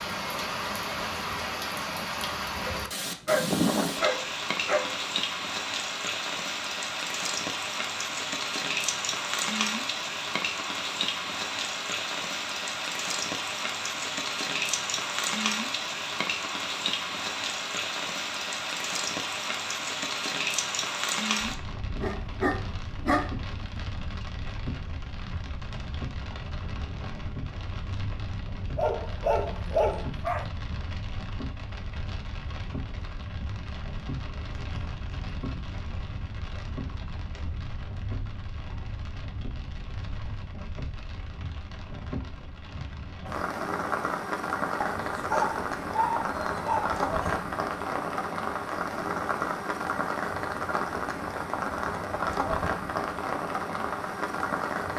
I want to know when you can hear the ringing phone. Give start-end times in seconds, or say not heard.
not heard.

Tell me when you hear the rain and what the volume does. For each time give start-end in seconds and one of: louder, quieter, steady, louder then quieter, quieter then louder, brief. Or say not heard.
0.0-54.9 quieter then louder.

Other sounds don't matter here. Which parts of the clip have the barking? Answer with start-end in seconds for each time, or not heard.
2.6-5.0, 22.0-23.8, 28.8-30.5, 44.8-47.4.